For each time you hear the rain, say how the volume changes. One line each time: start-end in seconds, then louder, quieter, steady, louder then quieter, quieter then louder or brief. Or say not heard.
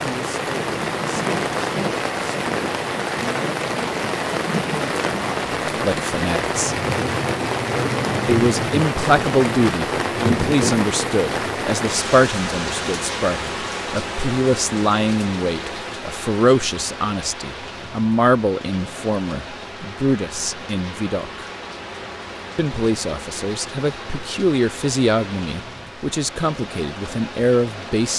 0.0-28.1 quieter.